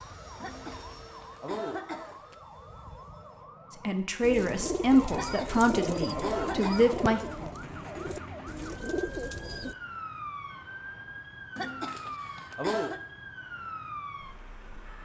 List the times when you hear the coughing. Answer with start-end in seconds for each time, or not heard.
0.4-2.4, 5.1-7.0, 11.6-13.0.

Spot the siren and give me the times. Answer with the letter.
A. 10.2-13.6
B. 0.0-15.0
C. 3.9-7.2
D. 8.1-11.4
B.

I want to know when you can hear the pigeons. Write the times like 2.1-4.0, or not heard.
4.2-9.8.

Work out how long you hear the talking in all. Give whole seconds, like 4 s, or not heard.
3 s.